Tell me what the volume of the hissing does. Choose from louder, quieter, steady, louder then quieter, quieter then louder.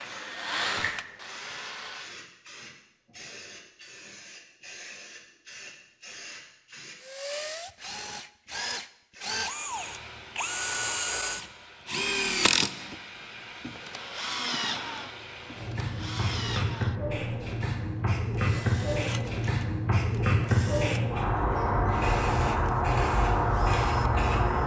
louder.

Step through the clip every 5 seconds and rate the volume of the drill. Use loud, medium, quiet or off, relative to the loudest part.
medium, medium, loud, medium, quiet.